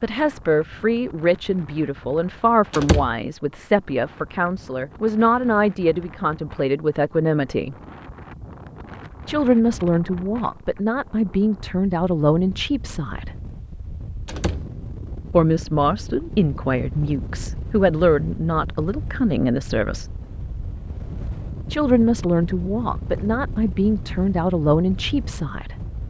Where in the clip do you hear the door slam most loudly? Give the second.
3 s.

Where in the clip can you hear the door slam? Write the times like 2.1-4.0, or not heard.
2.7-3.1, 14.2-14.7.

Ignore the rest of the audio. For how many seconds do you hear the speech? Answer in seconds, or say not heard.
21 s.